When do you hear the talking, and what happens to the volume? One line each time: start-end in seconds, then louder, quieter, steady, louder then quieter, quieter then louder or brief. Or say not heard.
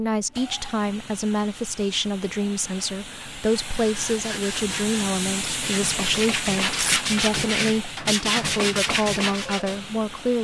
0.0-10.3 steady.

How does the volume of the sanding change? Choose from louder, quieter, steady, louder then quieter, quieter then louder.
louder.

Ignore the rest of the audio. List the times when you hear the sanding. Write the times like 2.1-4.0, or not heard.
3.8-9.8.